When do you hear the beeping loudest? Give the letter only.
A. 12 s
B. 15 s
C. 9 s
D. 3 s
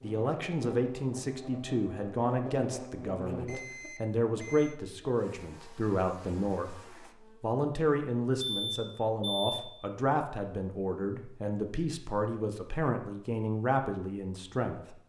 C.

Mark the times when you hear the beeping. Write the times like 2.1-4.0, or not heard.
3.5-4.8, 8.4-9.6.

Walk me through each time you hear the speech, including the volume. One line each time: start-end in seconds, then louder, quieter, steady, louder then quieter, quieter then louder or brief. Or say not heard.
0.0-15.0 steady.